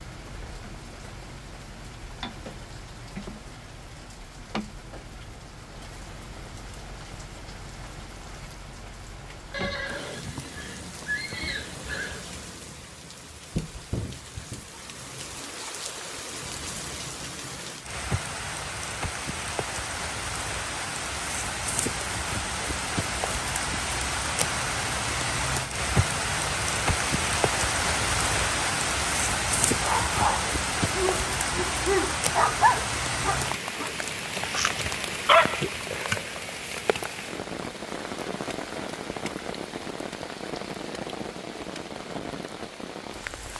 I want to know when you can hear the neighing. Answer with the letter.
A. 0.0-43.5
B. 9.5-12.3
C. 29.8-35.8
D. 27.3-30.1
B.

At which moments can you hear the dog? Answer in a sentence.
The dog can be heard from 29.8 to 35.8 s.